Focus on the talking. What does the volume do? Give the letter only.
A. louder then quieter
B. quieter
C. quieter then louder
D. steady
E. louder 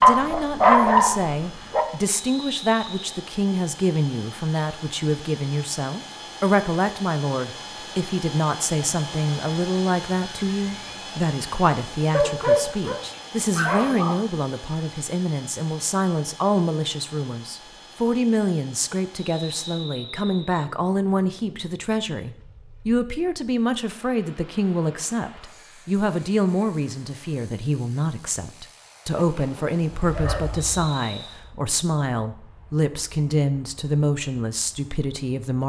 D.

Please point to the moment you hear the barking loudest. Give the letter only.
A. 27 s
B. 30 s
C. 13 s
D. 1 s
D.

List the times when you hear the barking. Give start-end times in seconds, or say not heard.
0.0-1.9, 12.1-14.2, 29.1-30.9.